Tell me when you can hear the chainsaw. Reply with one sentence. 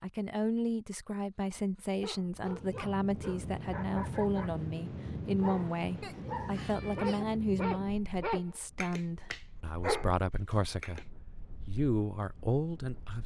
You can't hear the chainsaw here.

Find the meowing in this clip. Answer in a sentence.
You can hear the meowing from 6.0 to 7.2 s.